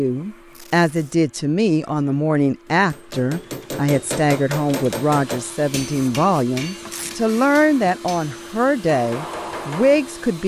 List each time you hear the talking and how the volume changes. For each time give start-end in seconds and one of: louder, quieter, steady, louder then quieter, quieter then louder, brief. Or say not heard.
0.0-10.4 steady.